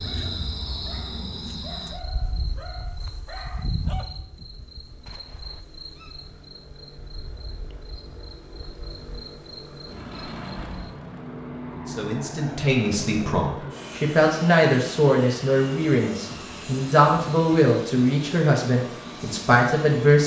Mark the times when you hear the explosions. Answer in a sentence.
The explosions can be heard from 5.0 to 5.7 s.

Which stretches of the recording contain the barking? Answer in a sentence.
You can hear the barking from 0.0 to 4.7 s.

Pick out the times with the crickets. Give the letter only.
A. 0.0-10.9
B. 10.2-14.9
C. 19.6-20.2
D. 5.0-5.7
A.